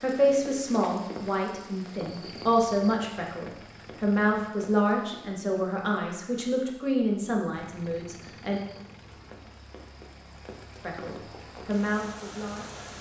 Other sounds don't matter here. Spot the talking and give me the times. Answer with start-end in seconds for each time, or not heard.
0.0-8.6, 10.8-12.8.